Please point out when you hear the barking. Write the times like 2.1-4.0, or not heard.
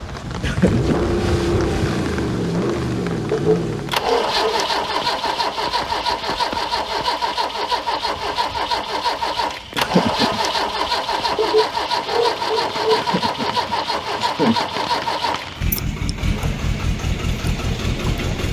3.3-4.7, 11.3-13.1.